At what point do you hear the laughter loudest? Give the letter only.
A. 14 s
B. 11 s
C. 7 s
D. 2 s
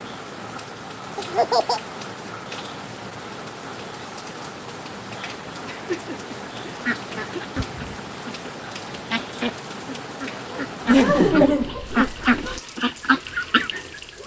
B.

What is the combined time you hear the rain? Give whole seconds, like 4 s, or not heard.
14 s.